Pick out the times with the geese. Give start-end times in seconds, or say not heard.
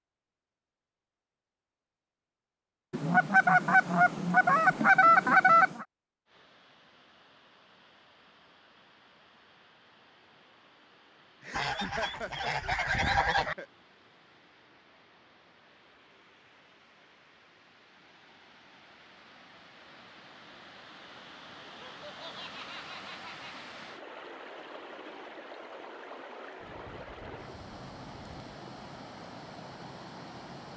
2.9-5.8, 11.5-13.6, 26.6-28.4.